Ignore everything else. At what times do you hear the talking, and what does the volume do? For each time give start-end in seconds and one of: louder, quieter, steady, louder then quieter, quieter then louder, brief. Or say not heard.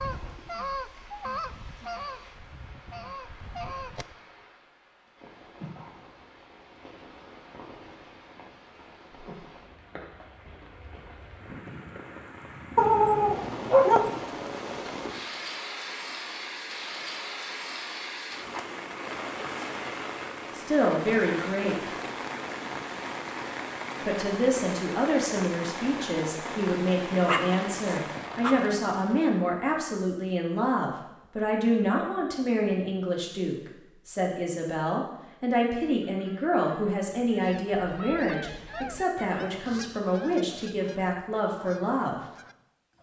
20.6-21.9 brief
24.1-42.1 steady.